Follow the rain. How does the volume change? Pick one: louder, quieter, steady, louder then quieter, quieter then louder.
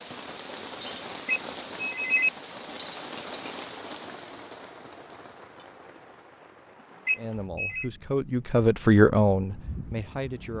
quieter then louder.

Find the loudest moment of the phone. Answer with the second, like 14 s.
2 s.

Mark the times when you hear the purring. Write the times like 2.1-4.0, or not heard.
not heard.